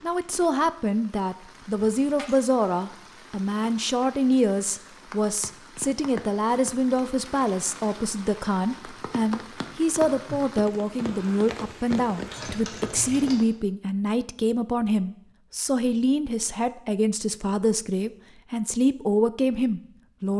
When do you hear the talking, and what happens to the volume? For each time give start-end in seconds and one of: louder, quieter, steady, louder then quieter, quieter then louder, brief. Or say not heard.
0.0-20.3 steady.